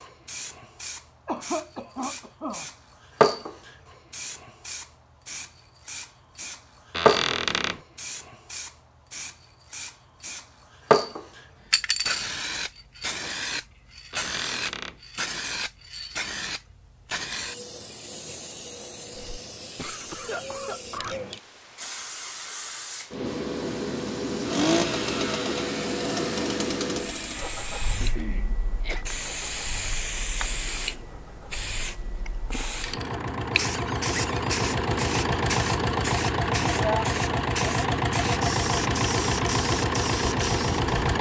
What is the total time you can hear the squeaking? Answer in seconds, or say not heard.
3 s.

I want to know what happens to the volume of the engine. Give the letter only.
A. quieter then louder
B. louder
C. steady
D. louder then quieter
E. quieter
A.